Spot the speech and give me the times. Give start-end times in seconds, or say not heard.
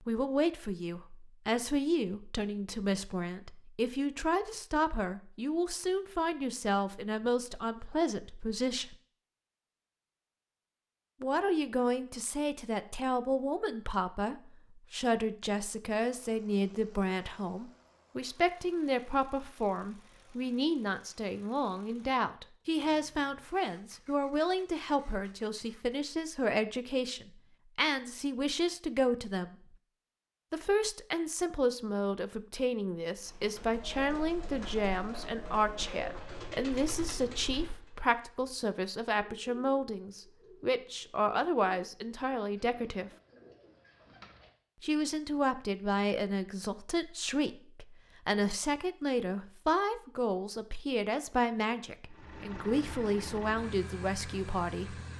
0.1-8.9, 11.2-29.6, 30.5-43.1, 44.8-55.0.